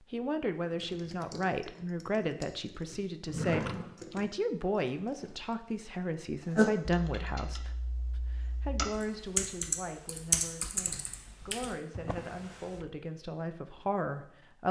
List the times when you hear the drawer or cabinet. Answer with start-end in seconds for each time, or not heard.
3.2-4.2, 11.9-12.9.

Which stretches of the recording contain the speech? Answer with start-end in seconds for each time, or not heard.
0.1-14.6.